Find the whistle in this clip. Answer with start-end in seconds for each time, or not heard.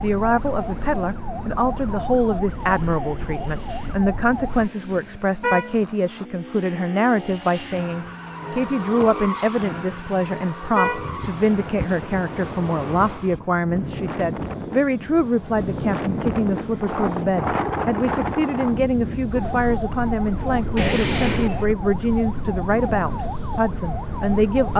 not heard.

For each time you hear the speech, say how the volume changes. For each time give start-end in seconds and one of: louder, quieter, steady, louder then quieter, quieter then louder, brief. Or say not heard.
0.0-24.7 steady.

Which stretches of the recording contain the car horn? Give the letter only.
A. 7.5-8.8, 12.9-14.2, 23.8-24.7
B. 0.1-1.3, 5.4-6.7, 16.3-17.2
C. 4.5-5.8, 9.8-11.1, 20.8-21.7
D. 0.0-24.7
C.